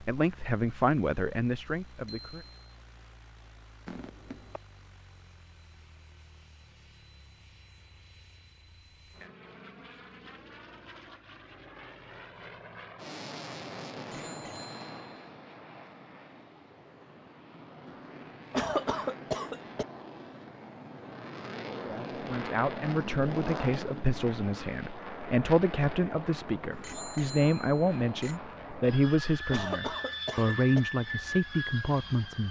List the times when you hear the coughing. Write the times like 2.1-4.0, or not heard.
3.9-4.6, 18.5-19.9, 29.5-30.8.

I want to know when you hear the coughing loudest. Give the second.
19 s.